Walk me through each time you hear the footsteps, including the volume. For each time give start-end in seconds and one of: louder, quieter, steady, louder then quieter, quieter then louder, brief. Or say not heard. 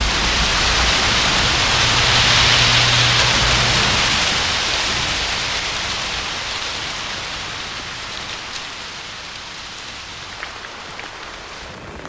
not heard.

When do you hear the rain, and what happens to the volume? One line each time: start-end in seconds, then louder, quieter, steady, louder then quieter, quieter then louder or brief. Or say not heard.
0.0-12.0 quieter.